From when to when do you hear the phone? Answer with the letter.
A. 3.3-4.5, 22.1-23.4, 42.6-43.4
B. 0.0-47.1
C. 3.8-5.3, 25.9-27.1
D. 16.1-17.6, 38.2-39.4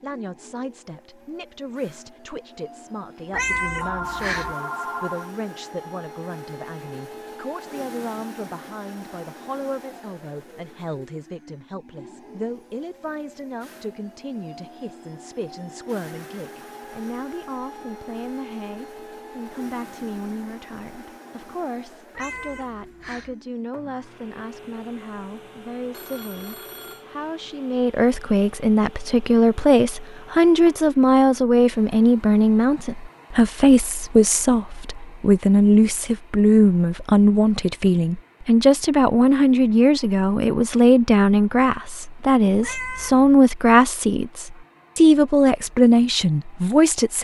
C.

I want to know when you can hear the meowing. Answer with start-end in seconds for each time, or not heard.
3.3-4.5, 22.1-23.4, 42.6-43.4.